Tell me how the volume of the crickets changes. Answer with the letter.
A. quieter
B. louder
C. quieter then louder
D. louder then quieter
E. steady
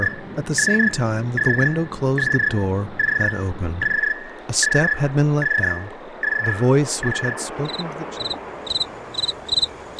A.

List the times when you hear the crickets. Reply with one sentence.
The crickets can be heard from 0.0 to 9.9 s.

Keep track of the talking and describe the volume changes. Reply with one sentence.
The volume of the talking stays about the same.